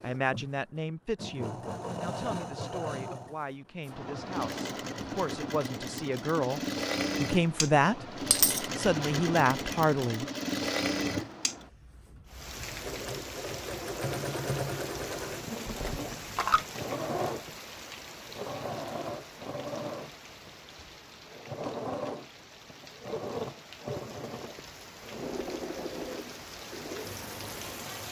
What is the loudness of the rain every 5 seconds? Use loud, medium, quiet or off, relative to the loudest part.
off, off, loud, loud, medium, loud.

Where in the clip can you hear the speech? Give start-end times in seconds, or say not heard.
0.0-10.2.